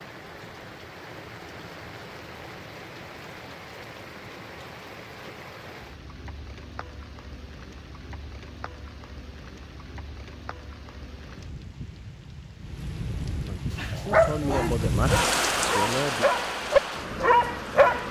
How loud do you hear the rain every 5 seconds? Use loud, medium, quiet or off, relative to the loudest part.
quiet, quiet, medium, loud.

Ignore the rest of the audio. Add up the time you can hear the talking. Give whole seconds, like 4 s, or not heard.
3 s.